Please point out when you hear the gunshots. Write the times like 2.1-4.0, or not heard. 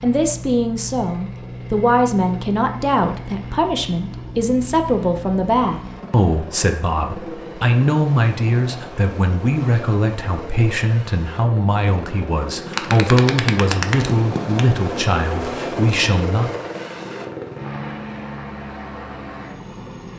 12.7-14.7.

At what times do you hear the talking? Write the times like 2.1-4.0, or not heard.
0.0-16.5.